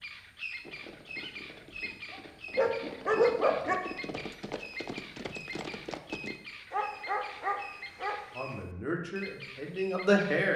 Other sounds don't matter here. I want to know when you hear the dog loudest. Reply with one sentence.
The volume of the dog peaks at 3 seconds.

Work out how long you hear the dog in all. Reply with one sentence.
You can hear the dog for 3 seconds altogether.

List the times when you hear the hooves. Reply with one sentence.
You can hear the hooves from 0.6 to 6.4 s.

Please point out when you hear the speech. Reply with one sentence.
You can hear the speech from 8.3 to 10.5 s.